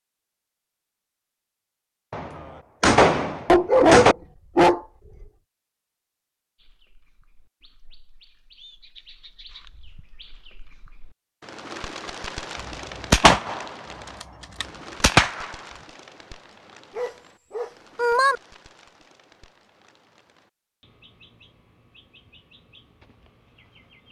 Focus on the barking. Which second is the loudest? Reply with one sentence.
The loudest moment of the barking is at 4 seconds.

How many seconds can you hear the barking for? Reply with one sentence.
You can hear the barking for 3 seconds altogether.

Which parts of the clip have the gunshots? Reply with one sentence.
The gunshots can be heard from 2.1 to 4.2 s and from 13.1 to 15.5 s.